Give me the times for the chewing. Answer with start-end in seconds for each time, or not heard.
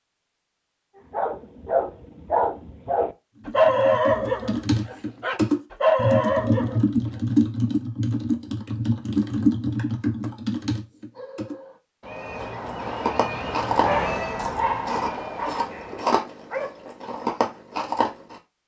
12.3-18.4.